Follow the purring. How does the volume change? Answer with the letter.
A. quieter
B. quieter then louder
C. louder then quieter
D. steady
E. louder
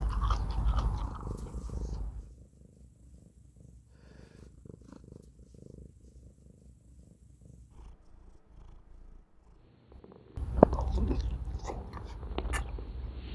B.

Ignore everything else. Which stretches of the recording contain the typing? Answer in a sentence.
You can't hear the typing here.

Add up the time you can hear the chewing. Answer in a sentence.
The chewing can be heard for 5 seconds in total.